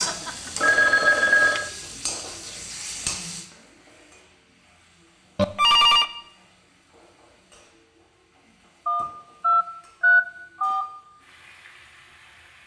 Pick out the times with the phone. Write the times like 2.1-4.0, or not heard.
0.0-1.7, 5.3-6.0, 8.8-10.8.